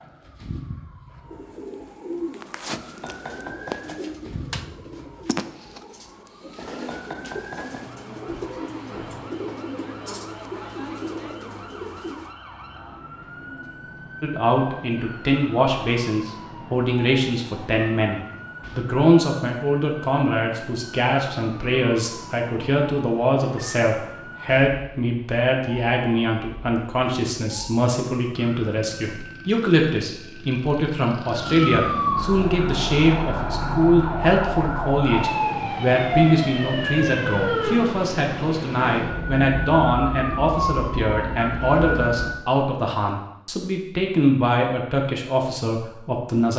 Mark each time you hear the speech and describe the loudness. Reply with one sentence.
The speech can be heard from 14.2 to 46.5 s, at a steady volume.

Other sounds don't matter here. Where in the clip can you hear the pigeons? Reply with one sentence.
The pigeons can be heard from 1.2 to 12.3 s.